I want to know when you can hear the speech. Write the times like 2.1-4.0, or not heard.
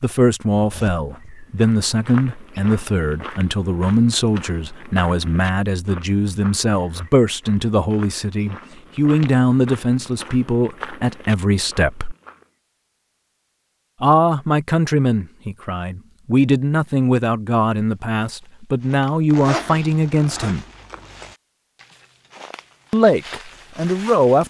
0.0-12.2, 14.0-20.6, 22.9-24.4.